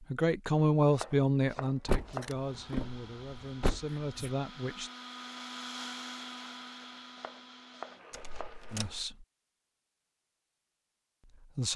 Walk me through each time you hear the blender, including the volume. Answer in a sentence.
The blender can be heard from 2.3 to 9.1 s, getting louder then quieter.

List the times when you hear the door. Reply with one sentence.
The door can be heard from 1.9 to 4.3 s and from 8.1 to 8.9 s.